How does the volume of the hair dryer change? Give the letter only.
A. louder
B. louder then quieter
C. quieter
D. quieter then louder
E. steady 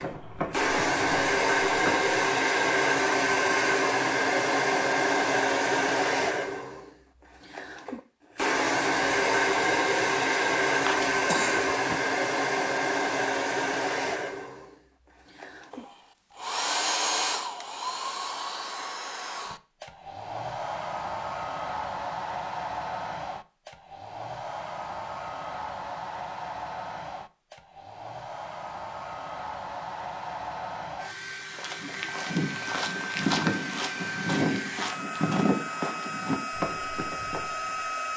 C.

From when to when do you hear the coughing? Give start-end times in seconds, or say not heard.
10.7-12.0.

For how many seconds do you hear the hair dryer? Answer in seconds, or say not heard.
38 s.